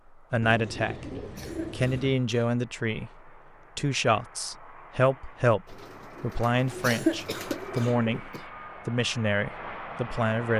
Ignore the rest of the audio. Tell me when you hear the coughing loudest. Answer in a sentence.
The volume of the coughing peaks at 7 seconds.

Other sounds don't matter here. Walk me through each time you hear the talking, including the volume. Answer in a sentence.
The talking can be heard briefly from 0.3 to 1.1 s; and from 1.7 to 10.5 s, at a steady volume.